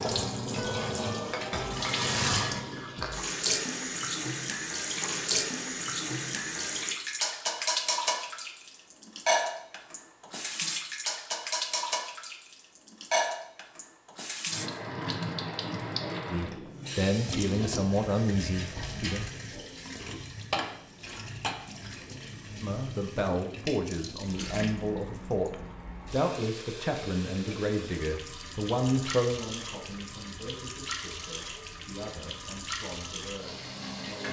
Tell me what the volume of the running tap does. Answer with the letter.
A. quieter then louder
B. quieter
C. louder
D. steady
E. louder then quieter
B.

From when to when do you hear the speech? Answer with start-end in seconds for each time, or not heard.
16.2-19.2, 22.6-34.2.